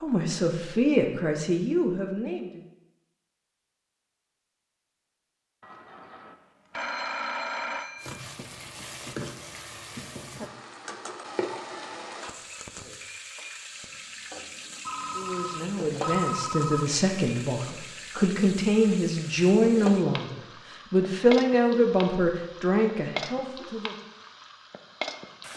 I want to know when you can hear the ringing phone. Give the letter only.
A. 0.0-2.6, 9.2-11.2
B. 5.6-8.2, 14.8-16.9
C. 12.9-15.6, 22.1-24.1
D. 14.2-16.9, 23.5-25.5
B.